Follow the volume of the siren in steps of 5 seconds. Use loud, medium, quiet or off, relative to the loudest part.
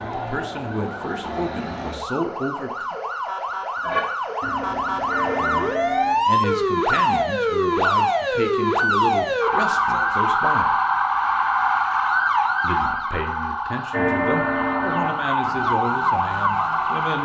medium, loud, loud, loud.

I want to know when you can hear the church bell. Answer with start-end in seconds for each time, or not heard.
3.8-6.2, 13.9-15.8.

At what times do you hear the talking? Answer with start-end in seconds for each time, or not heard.
0.1-3.0, 5.2-10.8, 12.6-17.2.